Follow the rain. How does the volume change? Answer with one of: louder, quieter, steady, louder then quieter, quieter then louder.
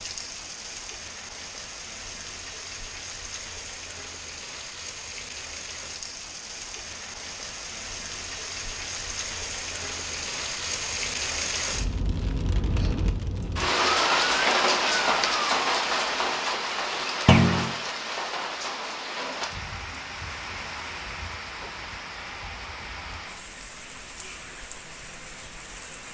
louder then quieter.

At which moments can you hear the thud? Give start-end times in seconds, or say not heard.
17.2-17.7.